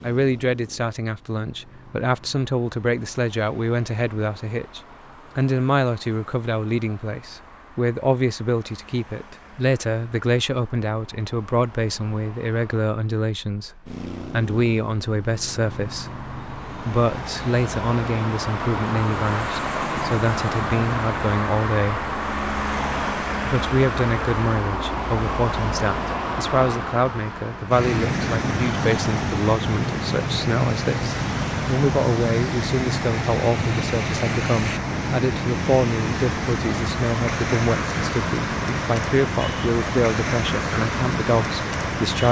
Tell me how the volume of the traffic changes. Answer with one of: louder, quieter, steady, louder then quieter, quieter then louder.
louder.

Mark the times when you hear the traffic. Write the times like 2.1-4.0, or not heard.
0.0-42.2.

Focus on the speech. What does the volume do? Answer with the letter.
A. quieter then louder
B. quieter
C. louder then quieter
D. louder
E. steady
E.